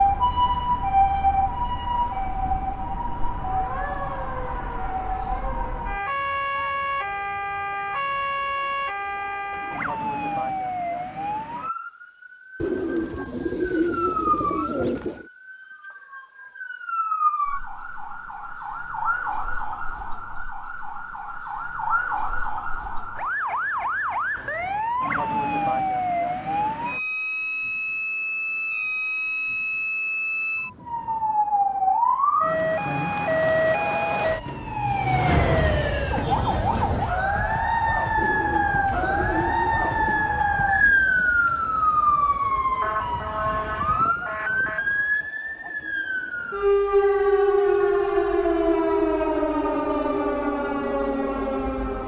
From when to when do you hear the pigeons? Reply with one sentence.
You can hear the pigeons from 12.6 to 15.2 s and from 38.1 to 40.4 s.